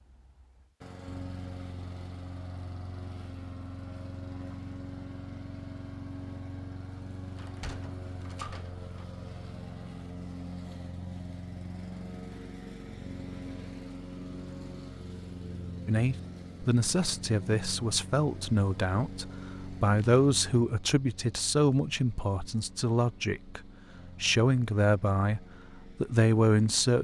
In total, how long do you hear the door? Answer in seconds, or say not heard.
2 s.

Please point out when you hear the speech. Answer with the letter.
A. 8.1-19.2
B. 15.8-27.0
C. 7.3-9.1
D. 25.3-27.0
B.